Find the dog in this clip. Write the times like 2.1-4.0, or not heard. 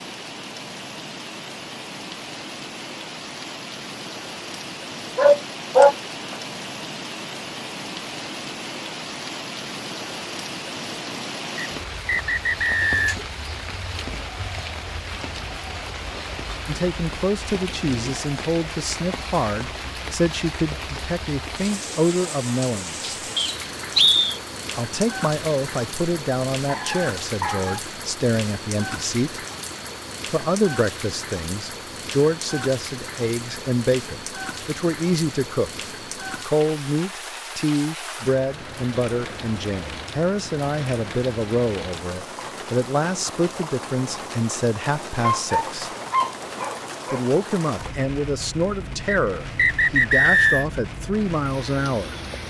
5.2-6.0, 26.6-27.8, 45.2-47.2.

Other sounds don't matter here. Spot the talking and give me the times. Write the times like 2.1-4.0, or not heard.
16.6-23.1, 24.8-29.4, 30.3-35.7, 36.5-45.9, 47.1-52.1.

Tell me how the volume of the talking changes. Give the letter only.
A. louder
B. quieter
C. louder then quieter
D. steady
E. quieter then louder
D.